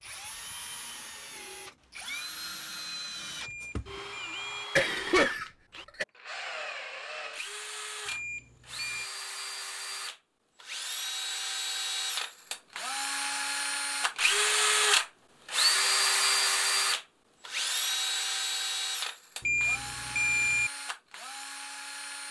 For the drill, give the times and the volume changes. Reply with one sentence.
You can hear the drill from 0.0 to 22.2 s, getting louder then quieter.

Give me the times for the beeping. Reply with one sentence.
You can hear the beeping from 3.4 to 4.7 s, from 8.1 to 9.1 s and from 19.4 to 20.7 s.